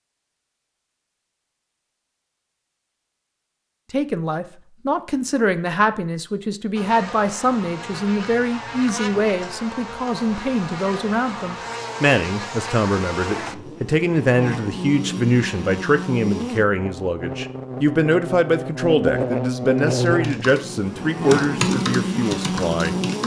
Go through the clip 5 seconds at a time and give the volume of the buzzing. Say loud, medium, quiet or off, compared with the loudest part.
off, medium, medium, loud, loud.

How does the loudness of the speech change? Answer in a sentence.
The volume of the speech stays about the same.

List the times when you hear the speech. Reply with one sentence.
The speech can be heard from 3.9 to 22.9 s.